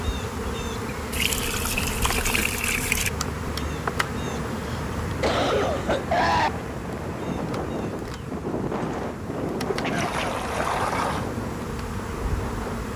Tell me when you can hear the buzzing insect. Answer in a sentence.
The buzzing insect can be heard from 0.0 to 12.9 s.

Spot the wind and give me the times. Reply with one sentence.
You can hear the wind from 3.4 to 12.9 s.